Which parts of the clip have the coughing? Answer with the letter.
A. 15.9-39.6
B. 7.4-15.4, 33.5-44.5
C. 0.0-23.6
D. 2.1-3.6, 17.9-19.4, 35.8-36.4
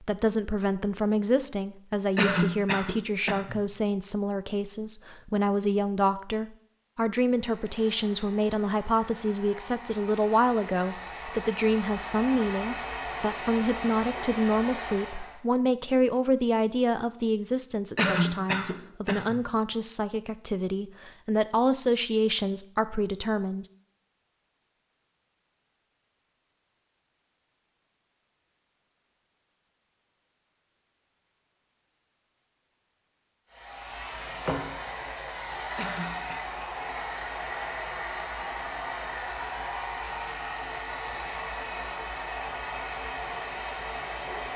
D.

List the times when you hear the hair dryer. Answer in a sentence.
The hair dryer can be heard from 7.4 to 15.4 s and from 33.5 to 44.5 s.